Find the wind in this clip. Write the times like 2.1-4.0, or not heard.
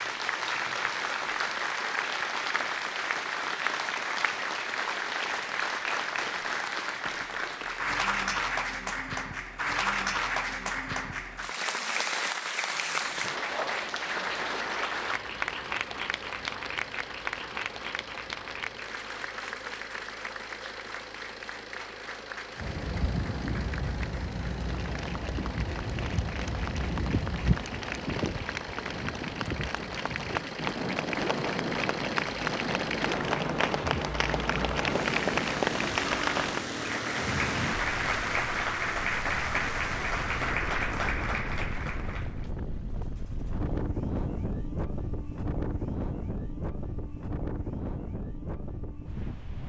22.6-49.6.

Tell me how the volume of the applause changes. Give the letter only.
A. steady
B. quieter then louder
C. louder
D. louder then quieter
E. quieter
B.